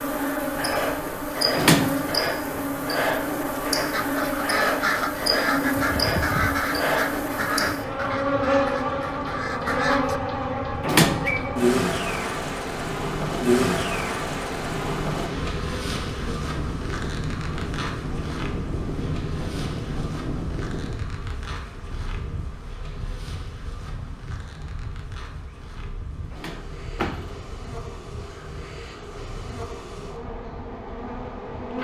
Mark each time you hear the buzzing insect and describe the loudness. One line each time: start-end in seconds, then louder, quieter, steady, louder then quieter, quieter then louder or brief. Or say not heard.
0.0-31.7 quieter.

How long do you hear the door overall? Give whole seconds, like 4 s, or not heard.
2 s.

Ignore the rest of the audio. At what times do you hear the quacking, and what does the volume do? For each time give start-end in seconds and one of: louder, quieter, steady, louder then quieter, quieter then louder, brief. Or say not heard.
3.9-10.2 quieter.